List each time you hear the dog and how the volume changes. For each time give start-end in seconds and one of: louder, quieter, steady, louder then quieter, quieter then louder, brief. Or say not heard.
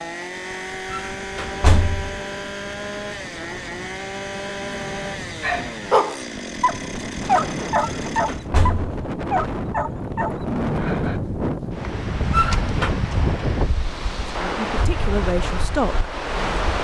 5.4-11.2 quieter.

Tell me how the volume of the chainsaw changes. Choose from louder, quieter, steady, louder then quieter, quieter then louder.
steady.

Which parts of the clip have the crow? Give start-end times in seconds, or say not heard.
not heard.